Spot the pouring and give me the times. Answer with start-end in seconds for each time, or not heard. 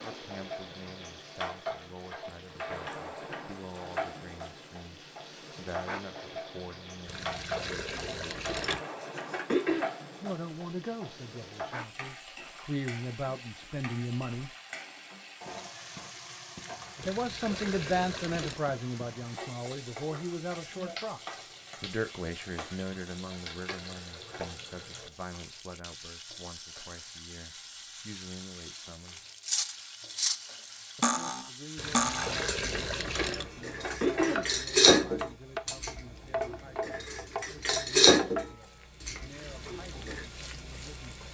7.0-8.8, 17.0-18.6, 31.8-33.5.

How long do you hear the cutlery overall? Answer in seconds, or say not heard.
11 s.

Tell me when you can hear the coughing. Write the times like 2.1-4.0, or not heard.
8.3-9.9, 23.3-24.4, 32.8-34.5.